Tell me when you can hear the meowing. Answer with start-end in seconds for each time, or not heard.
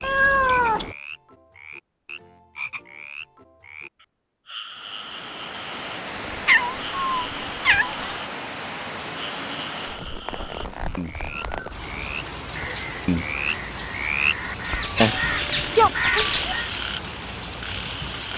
0.0-0.9, 6.5-7.9, 14.9-16.4.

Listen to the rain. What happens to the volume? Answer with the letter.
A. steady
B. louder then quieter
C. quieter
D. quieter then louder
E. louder
A.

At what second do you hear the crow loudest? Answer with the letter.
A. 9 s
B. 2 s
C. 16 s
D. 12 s
C.